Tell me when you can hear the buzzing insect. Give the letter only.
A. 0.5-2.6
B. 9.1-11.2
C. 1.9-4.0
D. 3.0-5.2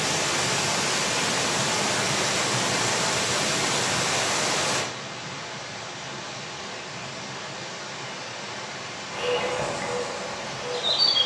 B.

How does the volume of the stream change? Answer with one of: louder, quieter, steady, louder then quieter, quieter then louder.
quieter.